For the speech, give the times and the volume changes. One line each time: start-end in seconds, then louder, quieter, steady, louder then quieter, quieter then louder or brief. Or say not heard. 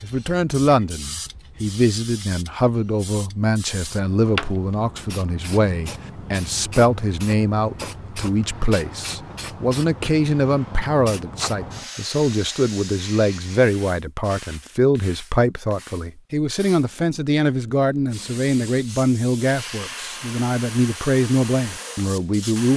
0.0-22.7 steady.